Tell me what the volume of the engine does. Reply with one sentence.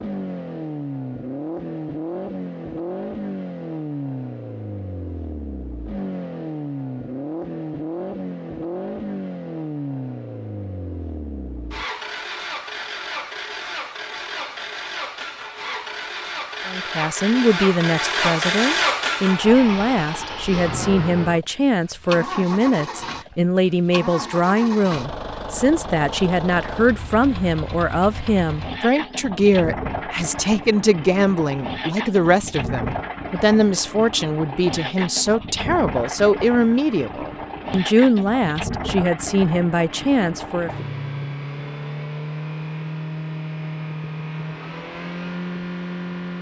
The volume of the engine stays about the same.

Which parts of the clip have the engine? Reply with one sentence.
The engine can be heard from 0.0 to 46.3 s.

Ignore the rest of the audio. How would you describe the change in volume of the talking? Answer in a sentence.
The volume of the talking stays about the same.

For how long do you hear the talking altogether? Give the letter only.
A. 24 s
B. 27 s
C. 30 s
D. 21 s
A.